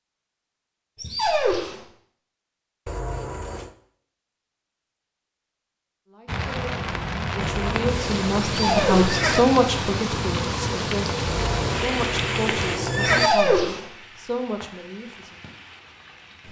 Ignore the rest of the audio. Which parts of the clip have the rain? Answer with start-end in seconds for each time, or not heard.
6.2-16.4.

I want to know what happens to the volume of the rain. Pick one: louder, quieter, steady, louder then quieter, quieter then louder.
quieter.